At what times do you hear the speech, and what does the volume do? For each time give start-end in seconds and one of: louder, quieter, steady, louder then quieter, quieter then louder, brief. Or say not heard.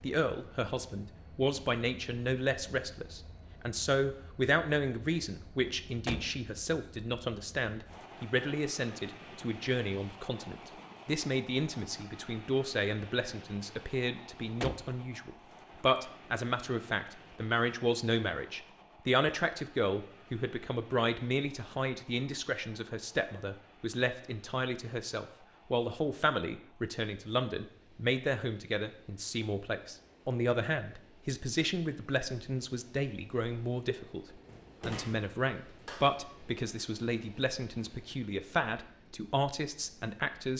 0.0-40.5 steady.